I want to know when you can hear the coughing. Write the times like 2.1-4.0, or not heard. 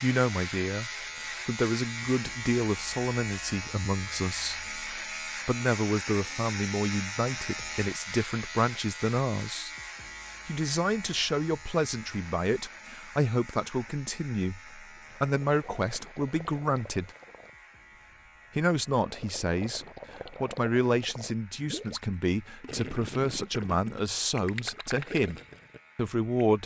not heard.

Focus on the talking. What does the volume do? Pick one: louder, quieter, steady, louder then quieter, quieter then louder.
steady.